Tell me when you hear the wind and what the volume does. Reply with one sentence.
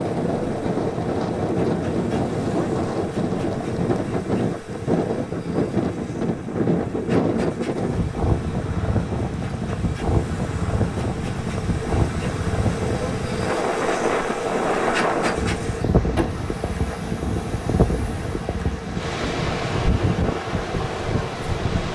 You can hear the wind from 0.0 to 21.9 s, at a steady volume.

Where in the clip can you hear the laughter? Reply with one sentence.
You can't hear the laughter here.